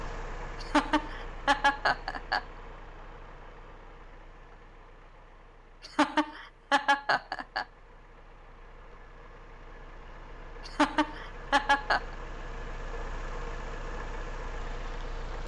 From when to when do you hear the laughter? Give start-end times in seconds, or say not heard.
0.6-2.4, 5.8-7.7, 10.7-12.0.